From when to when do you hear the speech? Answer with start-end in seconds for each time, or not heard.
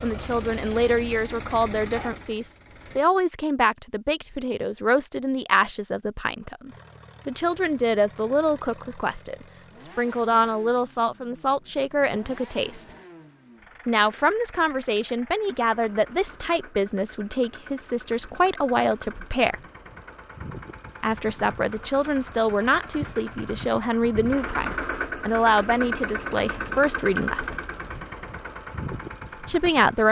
0.0-12.8, 13.8-19.6, 21.0-27.6, 29.4-30.0.